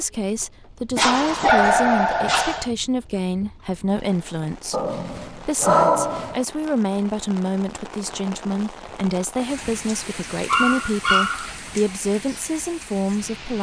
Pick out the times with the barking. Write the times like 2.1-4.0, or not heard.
0.9-2.7, 4.7-6.5, 9.8-11.5.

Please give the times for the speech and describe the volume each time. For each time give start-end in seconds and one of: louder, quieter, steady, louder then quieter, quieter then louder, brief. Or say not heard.
0.0-13.5 steady.